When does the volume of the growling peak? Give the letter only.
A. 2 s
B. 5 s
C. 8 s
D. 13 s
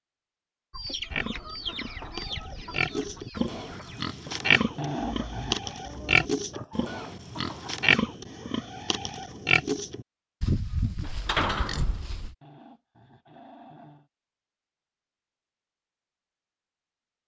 B.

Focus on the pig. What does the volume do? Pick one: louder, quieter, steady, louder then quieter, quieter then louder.
louder then quieter.